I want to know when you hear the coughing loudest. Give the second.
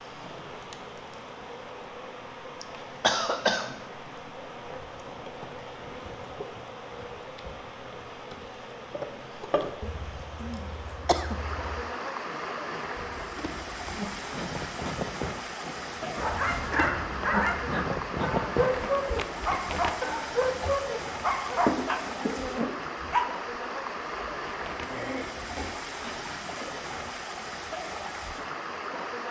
3 s.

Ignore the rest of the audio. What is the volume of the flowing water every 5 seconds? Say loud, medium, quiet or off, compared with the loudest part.
medium, medium, loud, loud, loud, loud.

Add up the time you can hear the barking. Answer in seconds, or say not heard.
7 s.